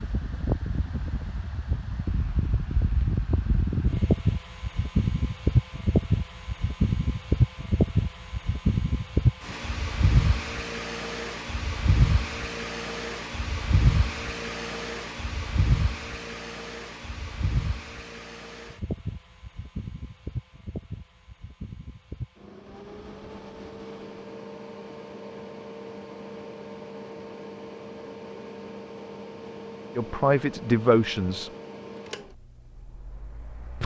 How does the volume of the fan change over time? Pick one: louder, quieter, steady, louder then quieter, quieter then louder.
quieter.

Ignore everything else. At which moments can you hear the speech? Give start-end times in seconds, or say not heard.
29.9-31.5.